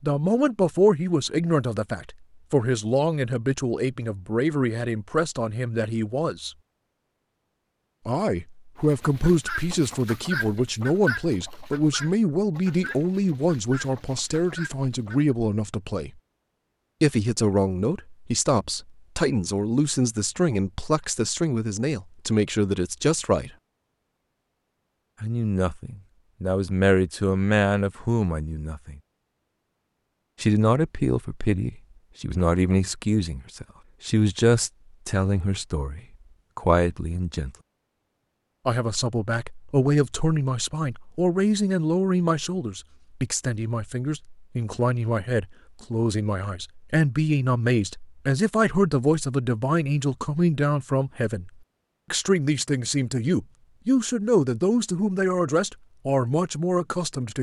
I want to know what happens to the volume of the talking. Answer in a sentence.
The loudness of the talking stays about the same.